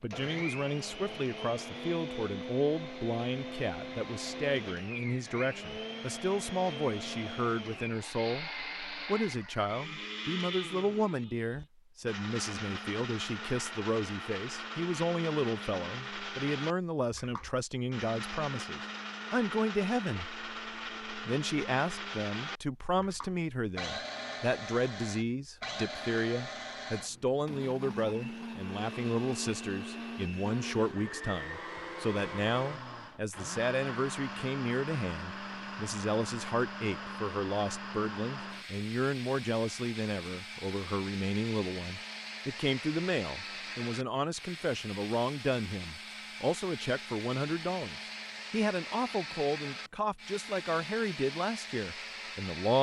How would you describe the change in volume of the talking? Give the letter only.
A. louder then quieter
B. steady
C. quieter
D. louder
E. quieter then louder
B.